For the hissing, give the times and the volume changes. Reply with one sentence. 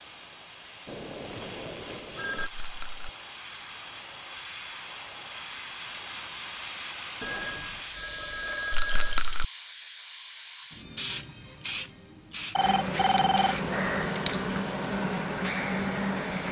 The hissing can be heard from 0.0 to 16.4 s, getting louder.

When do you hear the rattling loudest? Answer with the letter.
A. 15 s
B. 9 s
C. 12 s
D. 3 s
B.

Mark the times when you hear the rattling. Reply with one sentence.
The rattling can be heard from 2.4 to 3.1 s and from 8.7 to 9.4 s.